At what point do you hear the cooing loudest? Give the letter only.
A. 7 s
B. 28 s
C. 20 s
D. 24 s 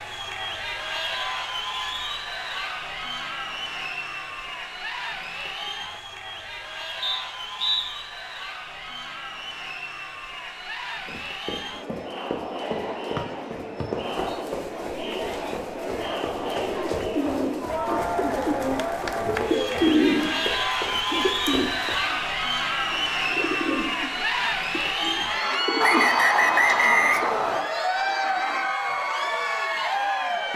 C.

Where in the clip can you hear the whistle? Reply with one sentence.
The whistle can be heard from 7.0 to 7.8 s, from 13.8 to 14.4 s and from 25.8 to 27.6 s.